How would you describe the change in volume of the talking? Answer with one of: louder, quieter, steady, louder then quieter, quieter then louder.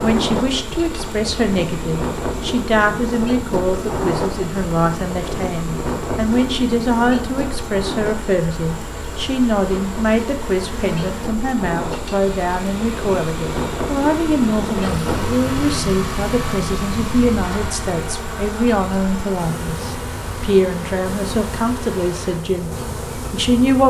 steady.